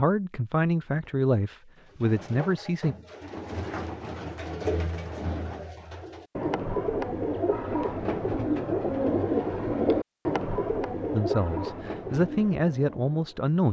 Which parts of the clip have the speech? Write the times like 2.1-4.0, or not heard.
0.0-3.0, 11.1-13.6.